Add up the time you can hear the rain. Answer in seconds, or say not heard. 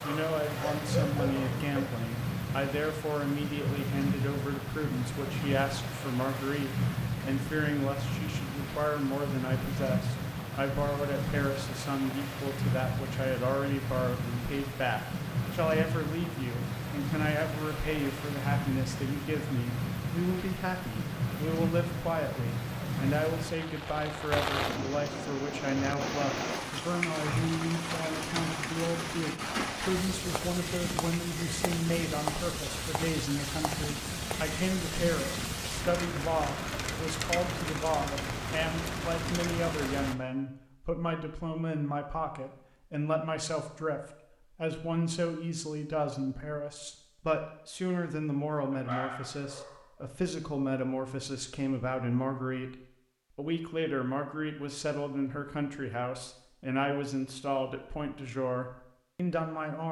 40 s.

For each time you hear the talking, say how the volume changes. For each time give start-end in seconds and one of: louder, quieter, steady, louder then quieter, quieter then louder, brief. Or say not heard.
0.0-59.8 steady.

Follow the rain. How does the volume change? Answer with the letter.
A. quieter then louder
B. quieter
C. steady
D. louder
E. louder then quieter
C.